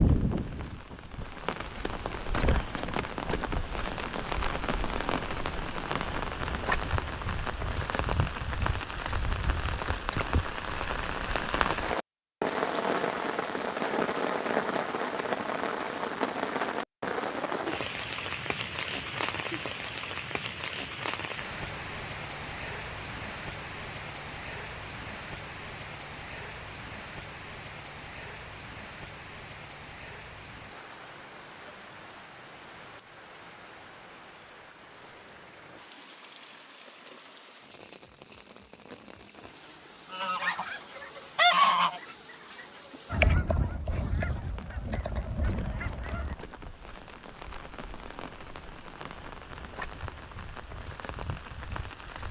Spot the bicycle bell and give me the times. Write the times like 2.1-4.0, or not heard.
not heard.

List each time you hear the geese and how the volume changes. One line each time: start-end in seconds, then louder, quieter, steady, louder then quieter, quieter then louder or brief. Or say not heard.
40.1-46.4 quieter.